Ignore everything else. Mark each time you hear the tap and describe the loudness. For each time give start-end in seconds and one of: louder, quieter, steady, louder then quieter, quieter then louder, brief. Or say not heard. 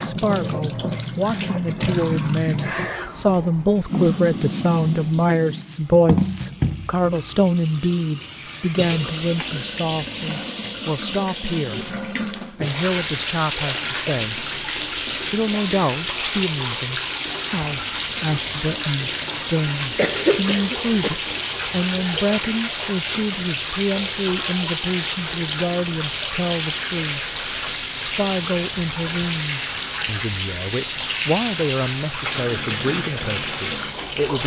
0.0-34.4 steady.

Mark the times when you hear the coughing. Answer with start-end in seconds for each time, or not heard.
19.9-21.1.